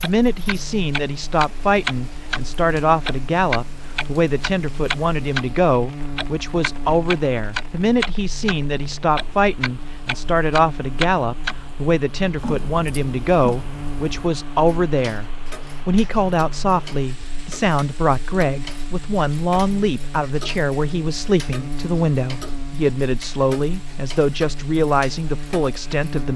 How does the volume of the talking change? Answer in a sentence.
The volume of the talking stays about the same.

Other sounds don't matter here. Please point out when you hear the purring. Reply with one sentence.
You can't hear the purring here.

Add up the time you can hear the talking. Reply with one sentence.
The talking can be heard for 26 seconds in total.